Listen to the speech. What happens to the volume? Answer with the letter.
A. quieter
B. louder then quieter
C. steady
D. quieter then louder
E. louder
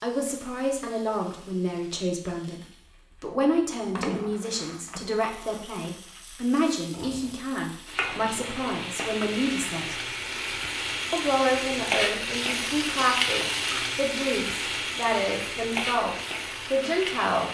C.